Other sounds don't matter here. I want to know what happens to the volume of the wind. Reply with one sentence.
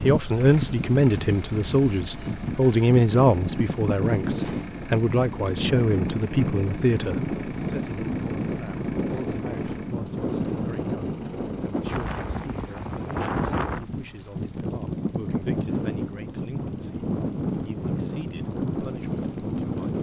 The loudness of the wind stays about the same.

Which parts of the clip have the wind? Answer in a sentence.
You can hear the wind from 0.0 to 19.9 s.